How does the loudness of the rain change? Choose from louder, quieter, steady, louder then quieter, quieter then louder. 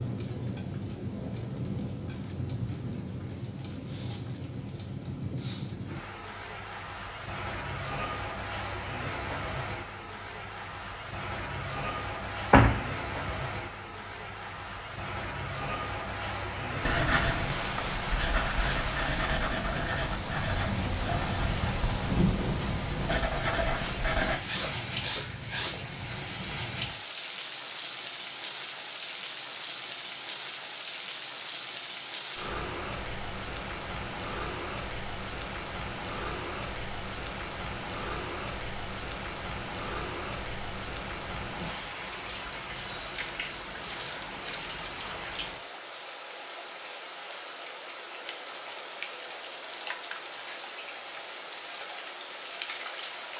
steady.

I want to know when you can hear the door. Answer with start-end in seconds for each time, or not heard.
12.5-13.3.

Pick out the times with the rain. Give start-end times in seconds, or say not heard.
0.0-53.3.